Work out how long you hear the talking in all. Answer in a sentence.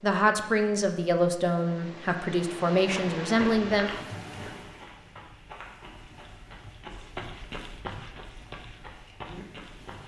The talking can be heard for 4 seconds in total.